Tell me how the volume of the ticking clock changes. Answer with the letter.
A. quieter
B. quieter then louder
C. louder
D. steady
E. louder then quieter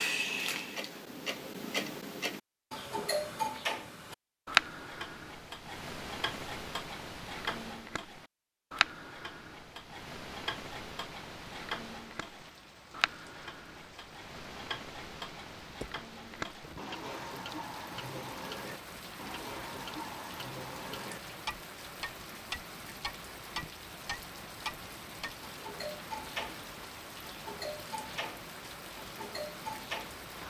A.